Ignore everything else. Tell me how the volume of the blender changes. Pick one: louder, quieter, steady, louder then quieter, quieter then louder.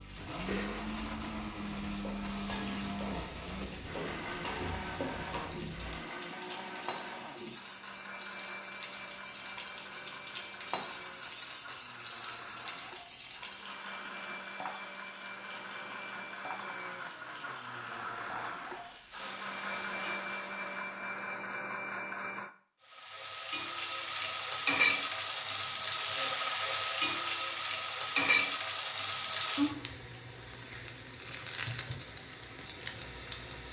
quieter then louder.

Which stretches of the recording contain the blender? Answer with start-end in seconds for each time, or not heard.
0.0-22.6.